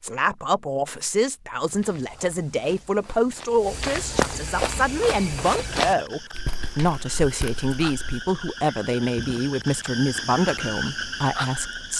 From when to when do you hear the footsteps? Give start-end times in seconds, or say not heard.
1.6-8.2.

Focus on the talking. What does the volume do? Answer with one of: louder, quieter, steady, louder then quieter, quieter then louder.
steady.